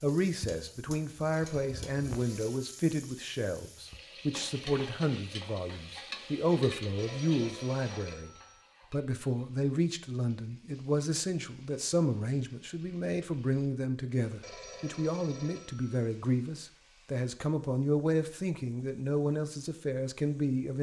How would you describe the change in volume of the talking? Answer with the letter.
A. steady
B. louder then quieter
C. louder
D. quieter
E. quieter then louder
A.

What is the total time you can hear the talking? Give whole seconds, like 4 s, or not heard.
20 s.